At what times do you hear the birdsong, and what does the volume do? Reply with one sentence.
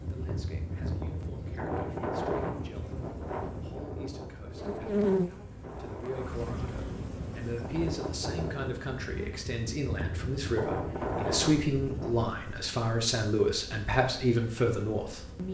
You can't hear the birdsong here.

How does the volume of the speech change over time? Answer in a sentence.
The volume of the speech goes up.